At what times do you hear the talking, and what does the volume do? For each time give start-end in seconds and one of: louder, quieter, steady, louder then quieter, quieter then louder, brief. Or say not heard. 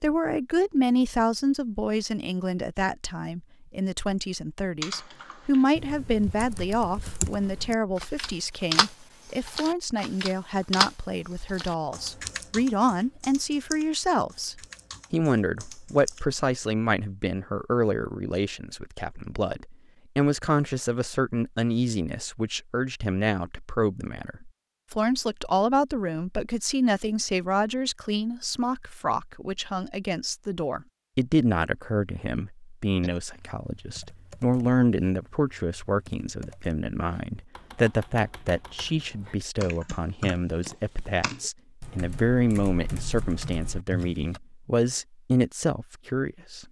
0.0-46.6 steady.